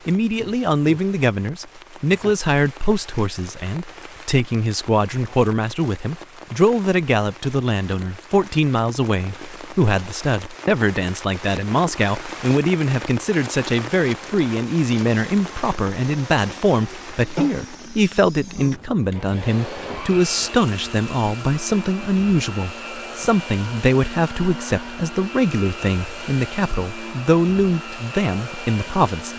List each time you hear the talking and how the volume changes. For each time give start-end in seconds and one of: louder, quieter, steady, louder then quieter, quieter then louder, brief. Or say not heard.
0.1-29.3 steady.